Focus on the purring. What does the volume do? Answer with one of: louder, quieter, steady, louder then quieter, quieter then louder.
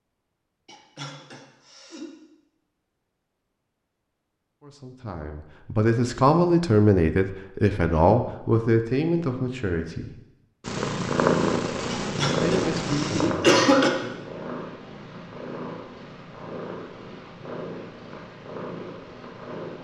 quieter.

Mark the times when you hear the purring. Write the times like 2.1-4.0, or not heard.
10.6-19.7.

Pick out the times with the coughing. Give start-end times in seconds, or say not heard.
0.7-2.0, 11.9-13.9.